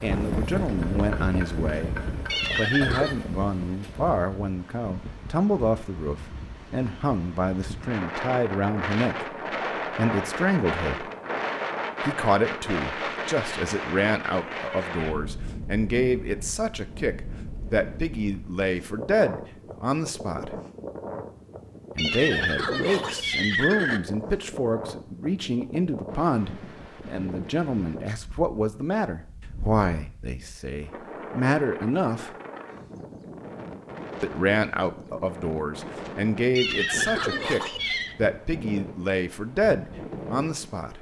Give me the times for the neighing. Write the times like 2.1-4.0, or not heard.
2.2-3.1, 21.9-24.0, 36.5-38.1.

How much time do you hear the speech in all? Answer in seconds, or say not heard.
36 s.